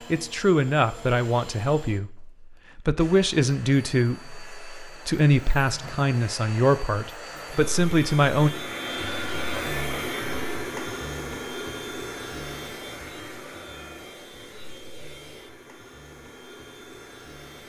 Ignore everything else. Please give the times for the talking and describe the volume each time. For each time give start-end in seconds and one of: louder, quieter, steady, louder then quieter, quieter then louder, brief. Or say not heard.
0.1-8.5 steady.